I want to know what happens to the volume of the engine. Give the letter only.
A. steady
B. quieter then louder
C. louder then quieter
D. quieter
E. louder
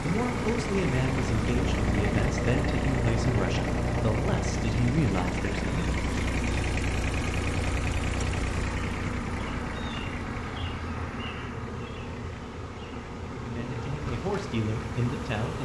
D.